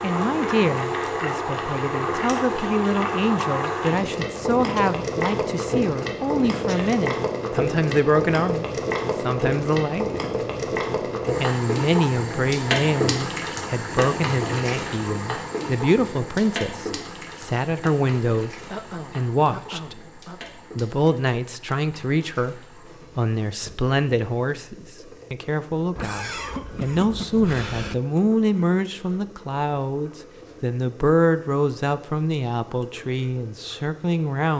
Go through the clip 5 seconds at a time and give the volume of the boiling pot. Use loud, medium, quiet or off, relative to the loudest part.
loud, loud, loud, medium, quiet, quiet, quiet.